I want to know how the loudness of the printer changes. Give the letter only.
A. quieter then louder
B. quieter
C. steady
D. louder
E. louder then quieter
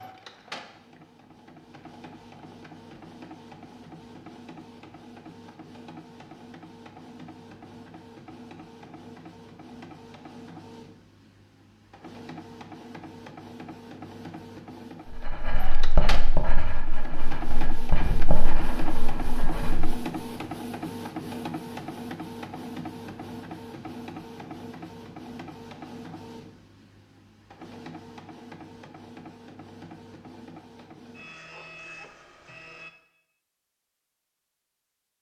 E.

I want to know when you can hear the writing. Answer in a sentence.
The writing can be heard from 15.1 to 20.0 s.